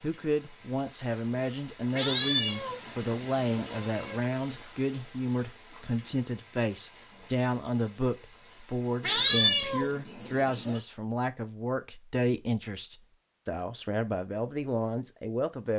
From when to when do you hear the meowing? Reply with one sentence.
The meowing can be heard from 1.9 to 4.2 s and from 9.0 to 10.8 s.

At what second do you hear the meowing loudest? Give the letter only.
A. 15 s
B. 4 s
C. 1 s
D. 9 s
D.